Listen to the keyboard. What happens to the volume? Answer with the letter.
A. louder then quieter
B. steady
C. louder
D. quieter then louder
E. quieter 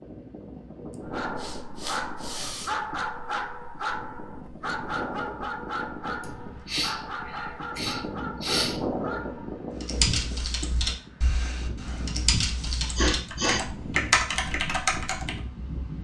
D.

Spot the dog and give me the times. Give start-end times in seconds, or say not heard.
1.0-9.6.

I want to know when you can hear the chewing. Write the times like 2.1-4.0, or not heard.
not heard.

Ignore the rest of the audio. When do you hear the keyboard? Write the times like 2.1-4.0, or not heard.
9.8-15.3.